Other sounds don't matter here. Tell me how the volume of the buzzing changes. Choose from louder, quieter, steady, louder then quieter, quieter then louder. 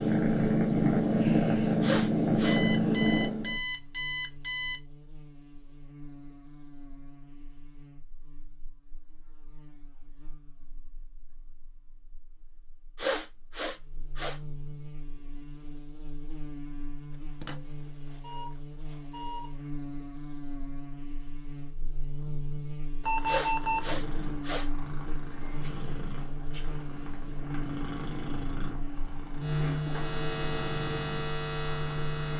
louder.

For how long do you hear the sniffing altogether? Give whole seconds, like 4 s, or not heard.
4 s.